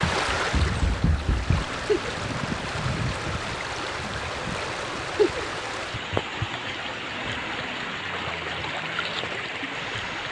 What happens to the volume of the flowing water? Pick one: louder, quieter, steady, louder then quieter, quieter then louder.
steady.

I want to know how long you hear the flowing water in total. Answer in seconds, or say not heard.
10 s.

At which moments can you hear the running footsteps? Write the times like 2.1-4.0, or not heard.
0.0-1.6.